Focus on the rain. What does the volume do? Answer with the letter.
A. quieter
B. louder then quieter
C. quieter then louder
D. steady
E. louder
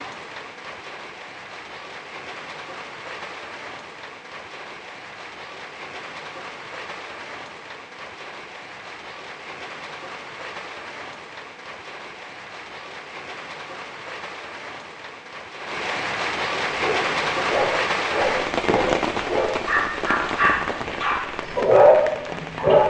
E.